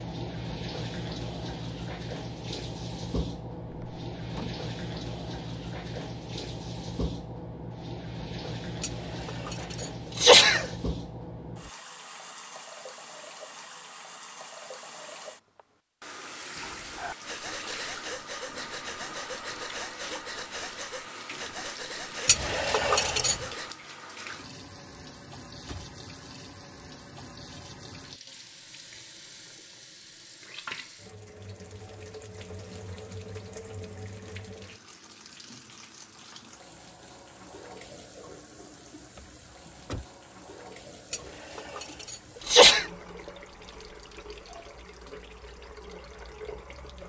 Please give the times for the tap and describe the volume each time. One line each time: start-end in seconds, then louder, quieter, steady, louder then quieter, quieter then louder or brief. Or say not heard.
0.0-47.0 quieter.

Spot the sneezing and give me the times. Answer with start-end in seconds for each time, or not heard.
8.8-10.7, 22.2-23.4, 41.1-42.9.